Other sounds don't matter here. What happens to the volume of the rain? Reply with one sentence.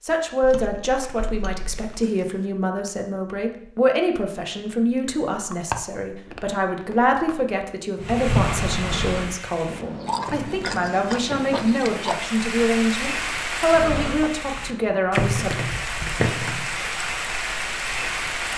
The volume of the rain goes down, then up.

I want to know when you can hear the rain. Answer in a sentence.
You can hear the rain from 8.0 to 18.5 s.